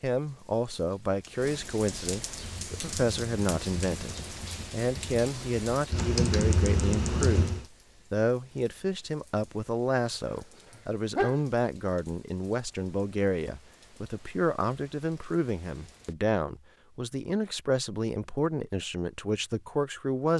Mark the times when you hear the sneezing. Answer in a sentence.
You can hear the sneezing from 10.2 to 11.4 s.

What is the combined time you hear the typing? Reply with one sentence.
The typing can be heard for 5 seconds in total.